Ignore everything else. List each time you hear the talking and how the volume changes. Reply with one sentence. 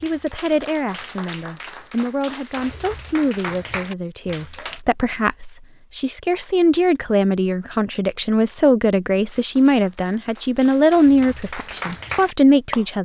The talking can be heard from 0.0 to 12.9 s, getting louder.